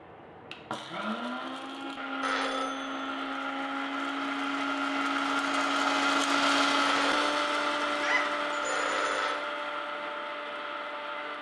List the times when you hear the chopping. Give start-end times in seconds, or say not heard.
not heard.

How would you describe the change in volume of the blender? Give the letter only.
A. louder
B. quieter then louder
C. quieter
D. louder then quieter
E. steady
D.